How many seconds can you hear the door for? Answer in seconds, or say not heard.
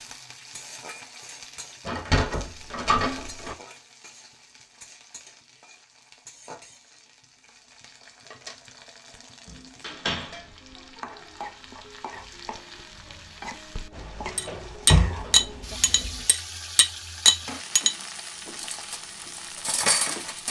4 s.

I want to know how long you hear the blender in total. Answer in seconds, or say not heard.
not heard.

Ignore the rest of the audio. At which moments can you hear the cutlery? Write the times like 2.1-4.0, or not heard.
14.3-17.9, 18.6-20.4.